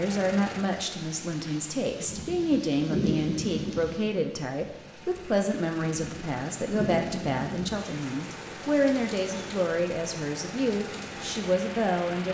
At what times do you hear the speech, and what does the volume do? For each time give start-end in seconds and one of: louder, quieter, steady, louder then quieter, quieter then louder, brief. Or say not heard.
0.0-12.2 steady.